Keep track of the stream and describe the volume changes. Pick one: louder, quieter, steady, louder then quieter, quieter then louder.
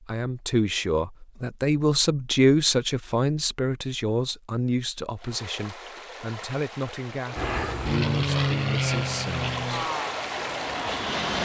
louder.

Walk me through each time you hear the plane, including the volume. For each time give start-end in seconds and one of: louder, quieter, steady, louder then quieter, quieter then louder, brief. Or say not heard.
7.3-11.4 quieter.